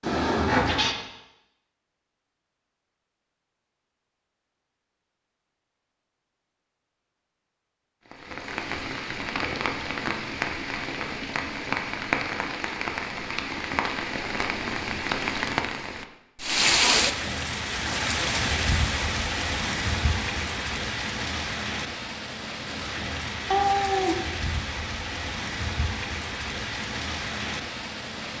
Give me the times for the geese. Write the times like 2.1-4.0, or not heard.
not heard.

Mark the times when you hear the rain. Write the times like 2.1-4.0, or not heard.
8.1-28.3.